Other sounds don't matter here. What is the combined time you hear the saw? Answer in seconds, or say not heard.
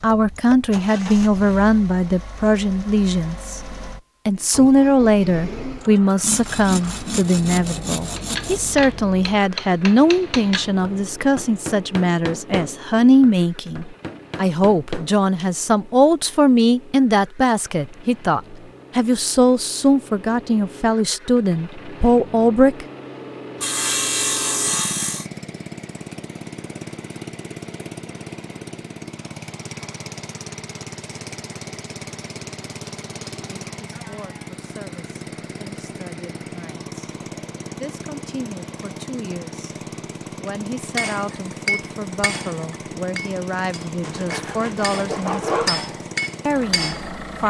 6 s.